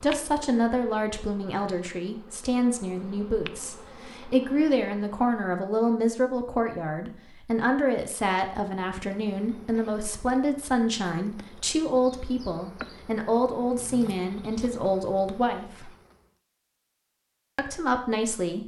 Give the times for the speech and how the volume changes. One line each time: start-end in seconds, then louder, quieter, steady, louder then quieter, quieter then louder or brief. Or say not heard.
0.0-15.9 steady
17.6-18.6 brief.